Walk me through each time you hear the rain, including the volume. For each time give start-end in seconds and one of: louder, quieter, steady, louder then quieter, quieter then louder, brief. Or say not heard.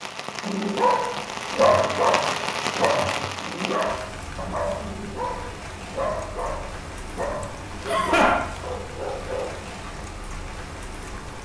0.0-11.3 quieter.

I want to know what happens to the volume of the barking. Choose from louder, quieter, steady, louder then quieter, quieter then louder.
quieter.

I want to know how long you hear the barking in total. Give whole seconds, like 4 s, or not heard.
9 s.